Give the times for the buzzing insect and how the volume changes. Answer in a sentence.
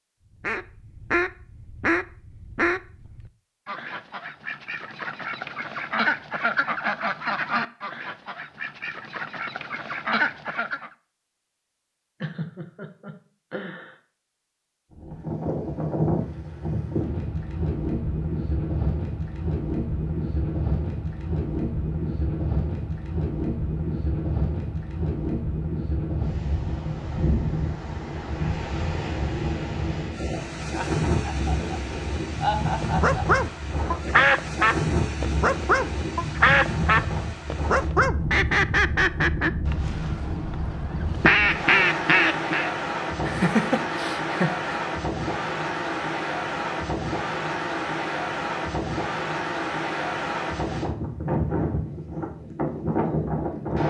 The buzzing insect can't be heard in this clip.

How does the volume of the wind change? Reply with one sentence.
The loudness of the wind stays about the same.